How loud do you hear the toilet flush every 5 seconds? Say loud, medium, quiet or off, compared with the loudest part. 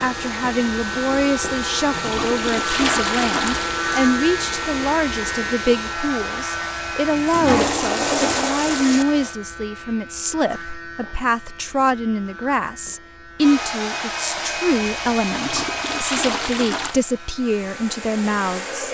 loud, loud, off, medium.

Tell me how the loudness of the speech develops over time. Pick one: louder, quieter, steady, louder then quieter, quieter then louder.
steady.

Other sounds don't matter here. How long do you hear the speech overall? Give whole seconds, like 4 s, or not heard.
19 s.